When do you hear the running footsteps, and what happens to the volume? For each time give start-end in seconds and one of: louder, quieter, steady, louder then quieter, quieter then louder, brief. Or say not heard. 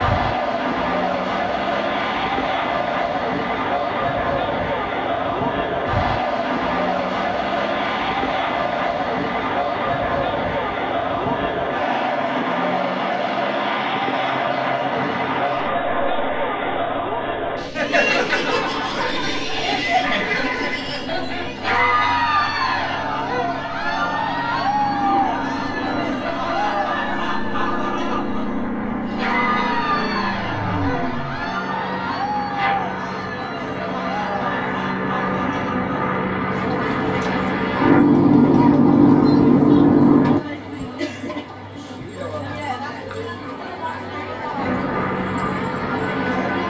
not heard.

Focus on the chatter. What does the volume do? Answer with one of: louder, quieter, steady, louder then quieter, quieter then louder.
quieter.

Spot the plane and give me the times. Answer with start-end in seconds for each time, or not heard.
0.0-40.4, 44.5-46.6.